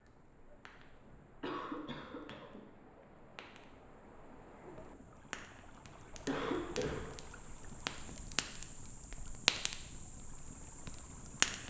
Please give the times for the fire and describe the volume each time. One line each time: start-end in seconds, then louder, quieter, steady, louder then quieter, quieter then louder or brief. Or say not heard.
0.0-11.6 louder.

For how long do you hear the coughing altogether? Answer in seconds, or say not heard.
2 s.